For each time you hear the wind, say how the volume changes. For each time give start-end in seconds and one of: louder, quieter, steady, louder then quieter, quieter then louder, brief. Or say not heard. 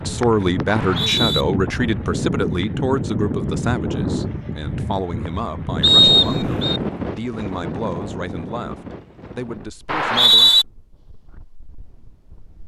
0.0-12.6 quieter.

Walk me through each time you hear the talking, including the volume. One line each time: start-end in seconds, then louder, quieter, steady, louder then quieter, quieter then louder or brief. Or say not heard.
0.1-10.7 quieter.